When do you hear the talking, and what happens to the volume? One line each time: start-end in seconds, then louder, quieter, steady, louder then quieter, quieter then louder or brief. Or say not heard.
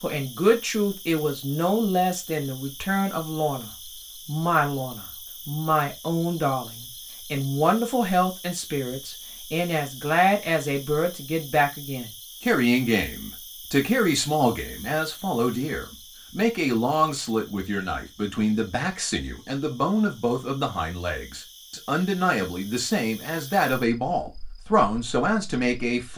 0.0-26.1 steady.